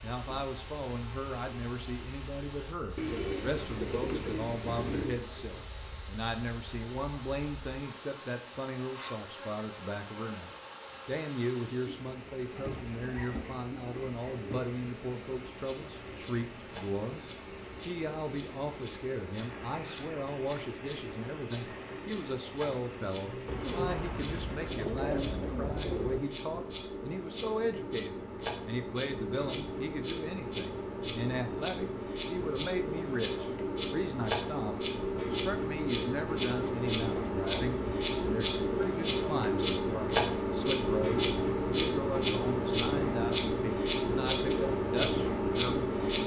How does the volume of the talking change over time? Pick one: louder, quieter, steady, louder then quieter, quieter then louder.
steady.